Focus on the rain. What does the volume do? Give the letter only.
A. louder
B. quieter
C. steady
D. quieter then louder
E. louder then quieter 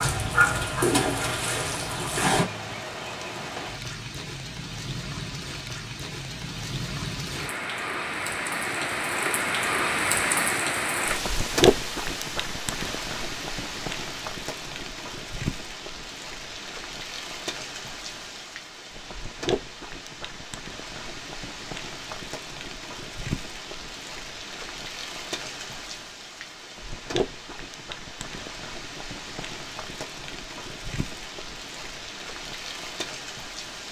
E.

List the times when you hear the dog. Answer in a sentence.
You can hear the dog from 0.0 to 2.5 s.